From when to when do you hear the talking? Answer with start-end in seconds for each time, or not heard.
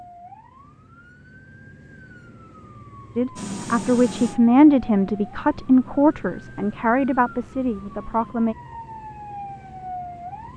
3.1-8.6.